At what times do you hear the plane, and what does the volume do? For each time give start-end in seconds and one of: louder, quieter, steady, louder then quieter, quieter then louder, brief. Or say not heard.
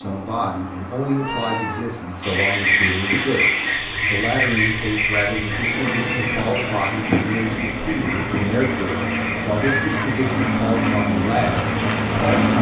0.0-12.5 louder.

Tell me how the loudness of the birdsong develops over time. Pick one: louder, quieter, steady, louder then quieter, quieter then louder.
quieter.